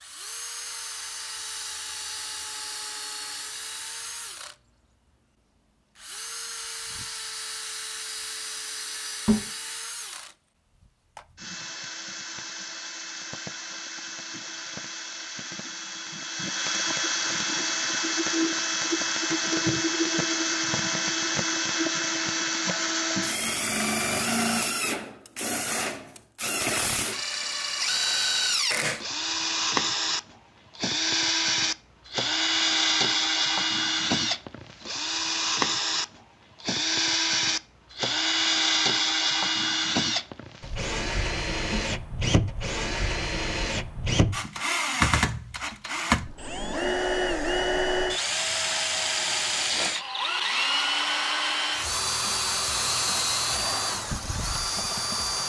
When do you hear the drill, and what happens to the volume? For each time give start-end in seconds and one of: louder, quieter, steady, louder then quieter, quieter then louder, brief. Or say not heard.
0.0-4.5 steady
6.0-55.4 louder.